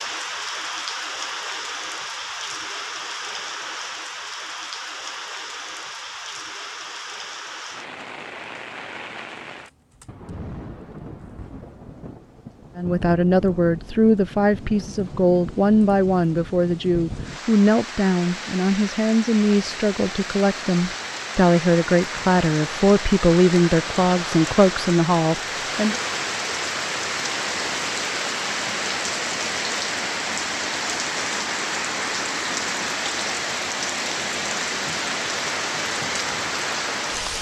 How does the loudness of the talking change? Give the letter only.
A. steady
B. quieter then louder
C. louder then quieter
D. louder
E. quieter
A.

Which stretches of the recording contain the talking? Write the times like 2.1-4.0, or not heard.
12.8-25.9.